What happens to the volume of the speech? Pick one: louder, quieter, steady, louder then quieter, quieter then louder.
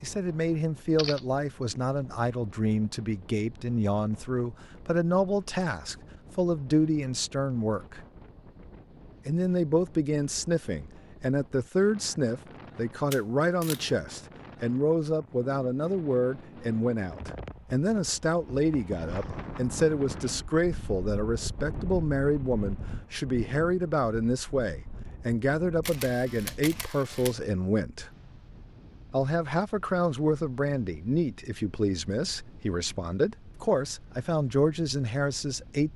steady.